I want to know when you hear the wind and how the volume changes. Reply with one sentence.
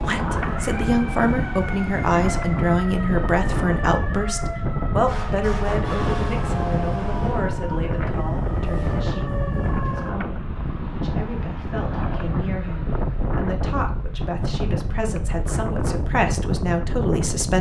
You can hear the wind from 0.0 to 17.5 s, at a steady volume.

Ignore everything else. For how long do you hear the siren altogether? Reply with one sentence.
The siren can be heard for 10 seconds in total.